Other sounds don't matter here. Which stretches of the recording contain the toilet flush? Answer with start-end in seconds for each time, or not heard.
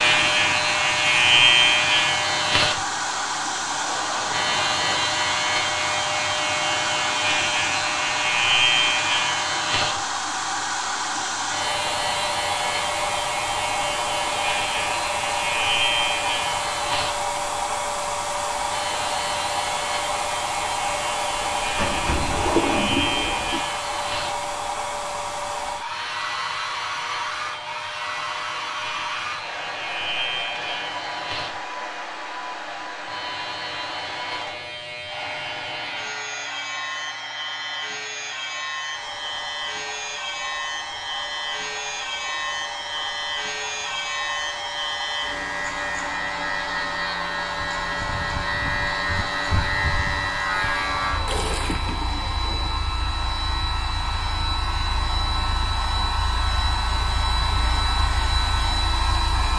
2.8-5.1, 21.4-23.6, 51.2-52.9.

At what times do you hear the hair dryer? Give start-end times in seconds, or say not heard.
0.0-59.5.